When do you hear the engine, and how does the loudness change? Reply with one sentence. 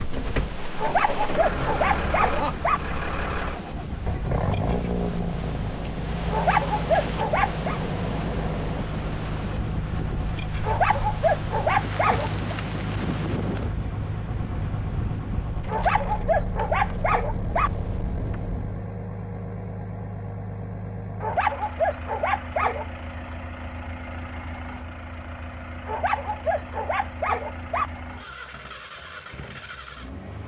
You can hear the engine from 0.0 to 30.4 s, getting quieter.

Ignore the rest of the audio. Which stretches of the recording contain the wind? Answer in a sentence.
The wind can be heard from 0.0 to 18.9 s.